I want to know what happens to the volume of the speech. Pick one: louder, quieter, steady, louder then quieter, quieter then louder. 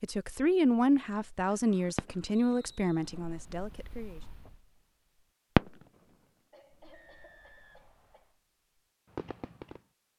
quieter.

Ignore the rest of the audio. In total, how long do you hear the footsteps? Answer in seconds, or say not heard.
not heard.